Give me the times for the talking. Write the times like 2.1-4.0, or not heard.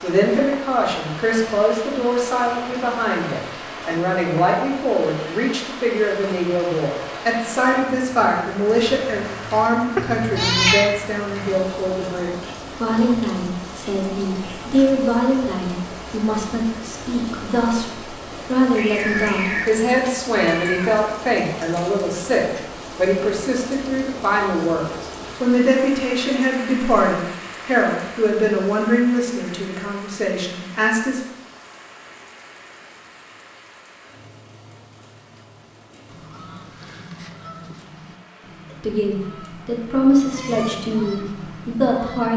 0.0-31.2, 38.8-42.3.